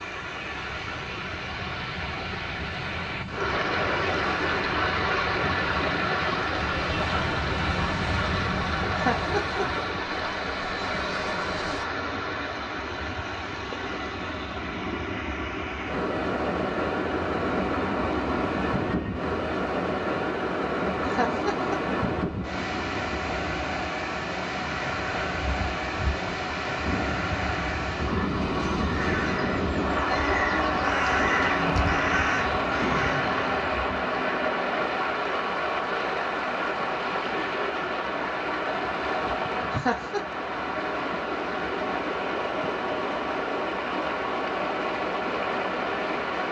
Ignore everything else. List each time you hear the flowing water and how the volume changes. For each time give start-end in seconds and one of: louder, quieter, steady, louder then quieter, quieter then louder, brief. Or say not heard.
0.0-46.4 steady.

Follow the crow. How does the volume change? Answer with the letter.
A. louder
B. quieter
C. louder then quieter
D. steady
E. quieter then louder
A.